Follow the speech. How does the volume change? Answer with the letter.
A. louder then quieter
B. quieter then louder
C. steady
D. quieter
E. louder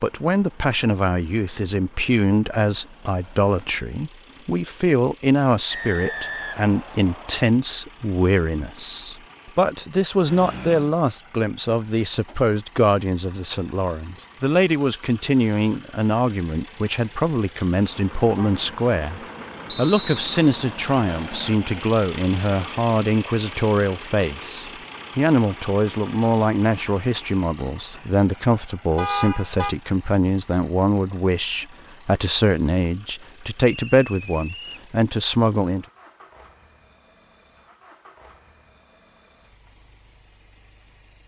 C.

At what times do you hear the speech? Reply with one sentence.
The speech can be heard from 0.0 to 35.9 s.